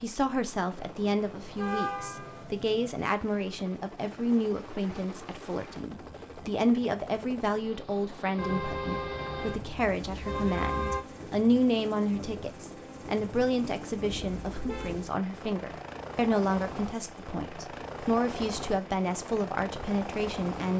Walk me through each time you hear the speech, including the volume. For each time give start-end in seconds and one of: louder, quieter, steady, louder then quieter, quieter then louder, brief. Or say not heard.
0.0-20.7 steady.